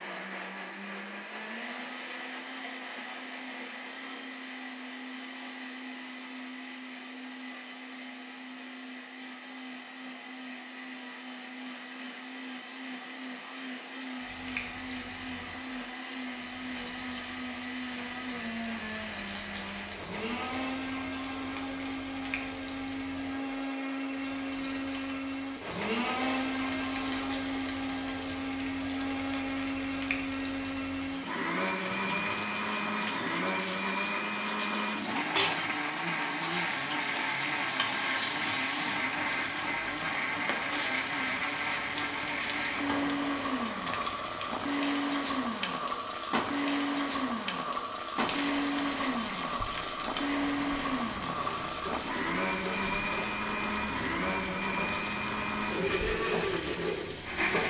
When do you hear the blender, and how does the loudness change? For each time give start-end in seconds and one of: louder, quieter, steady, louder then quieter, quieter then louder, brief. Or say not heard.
0.0-57.6 louder.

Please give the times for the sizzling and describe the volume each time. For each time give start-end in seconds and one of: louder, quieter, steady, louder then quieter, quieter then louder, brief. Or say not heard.
14.2-57.6 louder.